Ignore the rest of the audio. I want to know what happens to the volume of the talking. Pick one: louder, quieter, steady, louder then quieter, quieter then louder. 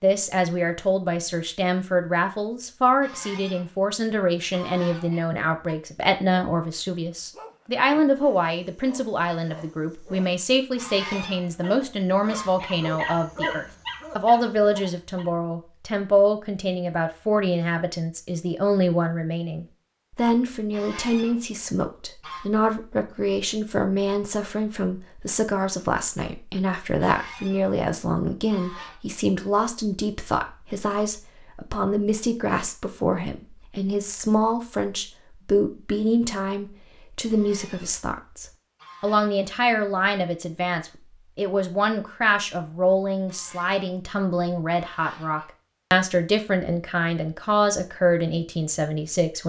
steady.